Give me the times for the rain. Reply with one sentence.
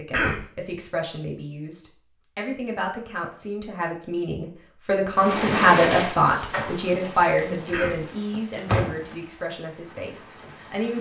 The rain can be heard from 5.1 to 10.9 s.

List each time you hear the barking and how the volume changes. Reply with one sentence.
The barking can't be heard in this clip.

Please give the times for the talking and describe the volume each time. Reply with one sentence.
The talking can be heard from 0.0 to 10.9 s, getting louder then quieter.